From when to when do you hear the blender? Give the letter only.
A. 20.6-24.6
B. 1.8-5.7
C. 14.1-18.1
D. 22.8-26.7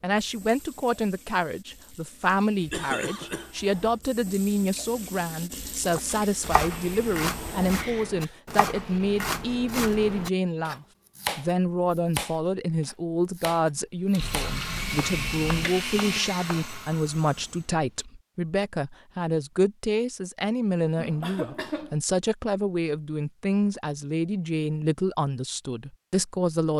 C.